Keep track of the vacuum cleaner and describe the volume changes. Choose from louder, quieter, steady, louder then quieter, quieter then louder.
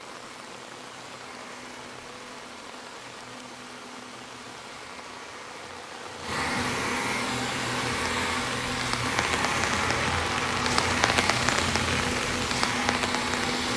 louder.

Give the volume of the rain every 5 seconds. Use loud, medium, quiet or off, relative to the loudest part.
quiet, medium, loud.